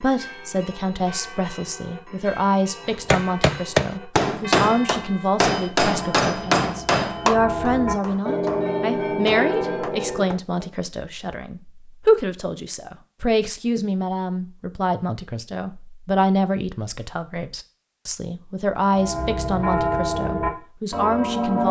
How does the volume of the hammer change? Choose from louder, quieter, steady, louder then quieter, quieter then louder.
quieter.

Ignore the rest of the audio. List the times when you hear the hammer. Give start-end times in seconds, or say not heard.
2.9-10.4.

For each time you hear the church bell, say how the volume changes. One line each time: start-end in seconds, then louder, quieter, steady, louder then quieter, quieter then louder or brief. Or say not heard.
0.0-10.7 louder
18.9-21.6 brief.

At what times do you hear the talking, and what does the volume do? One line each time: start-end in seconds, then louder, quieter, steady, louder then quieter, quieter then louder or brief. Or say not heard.
0.0-21.6 steady.